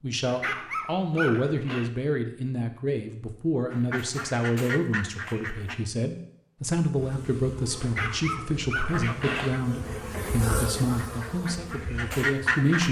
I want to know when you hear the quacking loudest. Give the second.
12 s.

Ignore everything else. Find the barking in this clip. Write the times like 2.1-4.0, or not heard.
0.2-1.9, 7.8-9.6.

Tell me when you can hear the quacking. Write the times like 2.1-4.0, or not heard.
3.7-5.8, 8.9-12.8.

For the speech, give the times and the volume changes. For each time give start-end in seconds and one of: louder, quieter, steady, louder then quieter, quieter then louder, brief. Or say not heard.
0.0-12.8 steady.